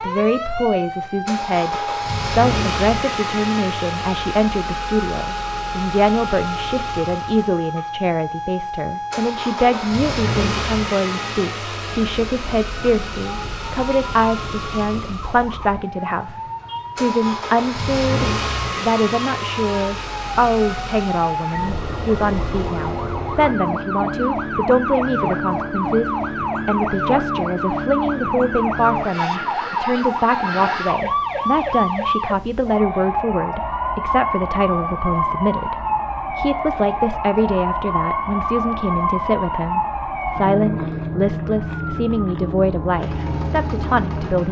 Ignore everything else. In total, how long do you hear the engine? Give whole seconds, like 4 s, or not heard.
25 s.